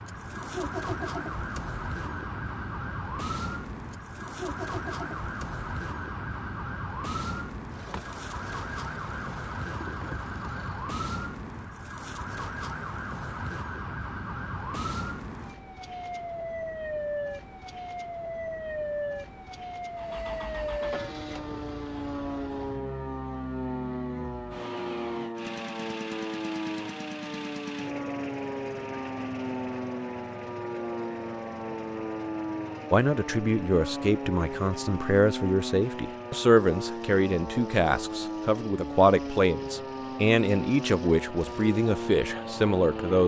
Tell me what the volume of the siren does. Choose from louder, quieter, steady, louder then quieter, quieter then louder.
steady.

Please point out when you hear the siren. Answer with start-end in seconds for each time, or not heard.
0.0-43.2.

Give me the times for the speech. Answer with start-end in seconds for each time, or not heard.
32.9-43.2.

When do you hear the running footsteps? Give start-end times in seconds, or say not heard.
not heard.